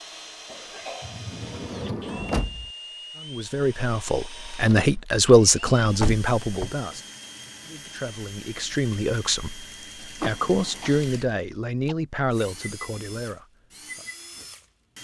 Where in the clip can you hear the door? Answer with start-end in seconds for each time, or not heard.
1.0-2.7, 6.0-6.8, 10.2-11.0.